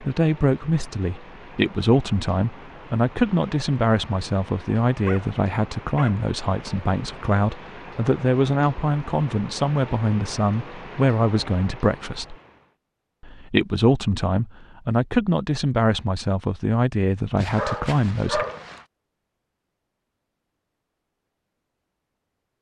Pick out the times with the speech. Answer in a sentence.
The speech can be heard from 0.0 to 12.3 s and from 13.2 to 18.4 s.